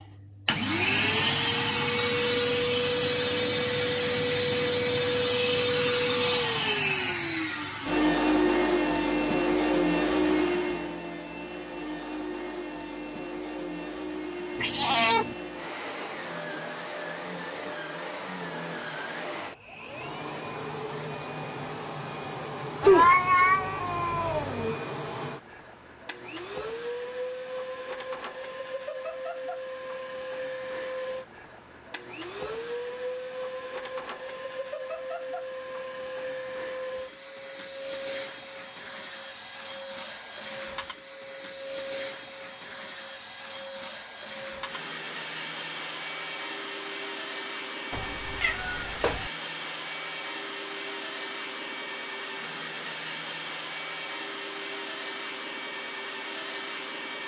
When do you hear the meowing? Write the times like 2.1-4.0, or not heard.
14.6-15.3, 22.8-24.8, 47.9-49.3.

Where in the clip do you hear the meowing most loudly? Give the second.
23 s.